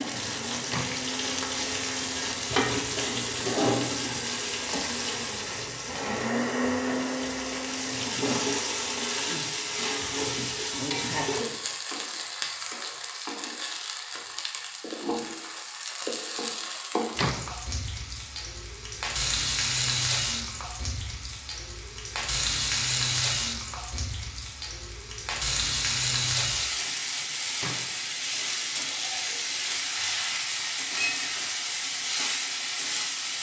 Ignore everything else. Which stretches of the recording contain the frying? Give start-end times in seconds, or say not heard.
0.0-33.3.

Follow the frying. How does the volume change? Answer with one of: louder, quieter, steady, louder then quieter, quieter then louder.
steady.